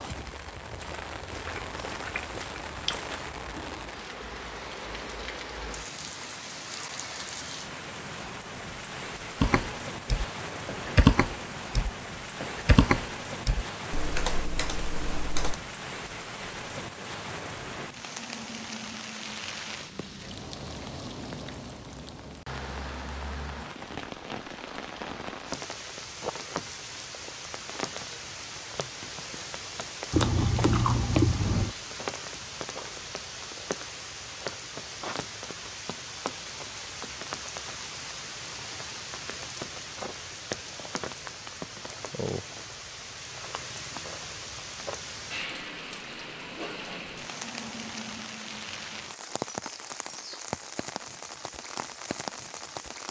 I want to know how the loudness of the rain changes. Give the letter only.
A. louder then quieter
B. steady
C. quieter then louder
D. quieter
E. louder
B.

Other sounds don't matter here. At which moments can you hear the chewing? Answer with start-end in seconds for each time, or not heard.
1.4-3.3, 30.1-31.8.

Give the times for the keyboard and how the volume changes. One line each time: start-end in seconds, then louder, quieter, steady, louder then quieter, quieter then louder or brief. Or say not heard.
9.4-15.6 louder then quieter.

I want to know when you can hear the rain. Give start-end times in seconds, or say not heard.
0.0-53.0.